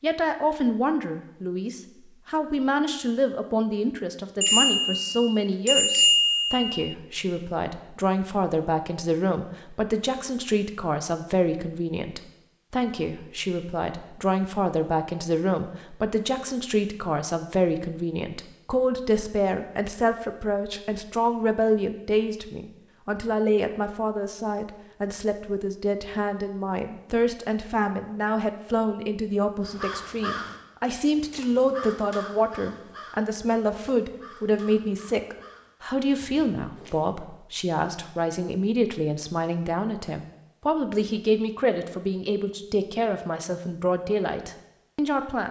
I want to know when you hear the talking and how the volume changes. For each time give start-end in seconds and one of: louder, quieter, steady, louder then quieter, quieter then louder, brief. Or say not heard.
0.0-45.4 steady.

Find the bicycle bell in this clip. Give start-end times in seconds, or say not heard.
4.4-6.9.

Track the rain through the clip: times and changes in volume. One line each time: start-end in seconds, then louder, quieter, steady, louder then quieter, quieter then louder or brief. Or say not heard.
not heard.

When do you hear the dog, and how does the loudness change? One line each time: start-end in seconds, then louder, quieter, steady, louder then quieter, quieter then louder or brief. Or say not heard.
not heard.